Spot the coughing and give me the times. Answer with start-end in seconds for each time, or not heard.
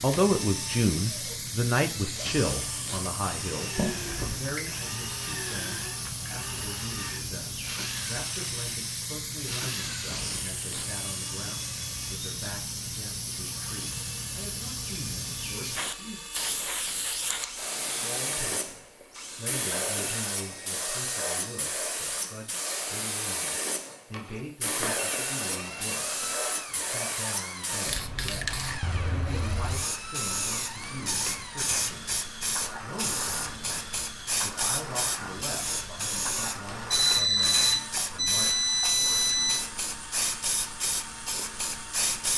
not heard.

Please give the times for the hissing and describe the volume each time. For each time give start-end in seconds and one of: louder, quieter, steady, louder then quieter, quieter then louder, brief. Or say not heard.
0.0-42.3 steady.